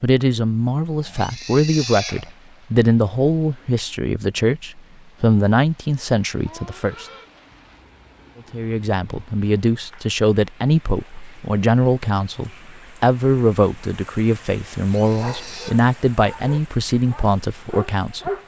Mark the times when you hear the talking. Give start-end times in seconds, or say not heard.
0.0-7.0, 8.5-18.3.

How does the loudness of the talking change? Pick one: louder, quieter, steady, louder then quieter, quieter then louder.
steady.